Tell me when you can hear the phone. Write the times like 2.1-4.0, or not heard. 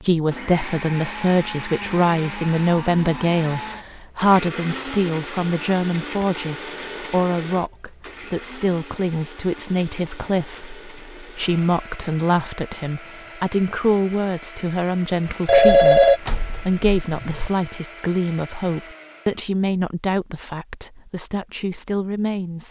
15.4-17.5.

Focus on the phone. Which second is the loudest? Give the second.
16 s.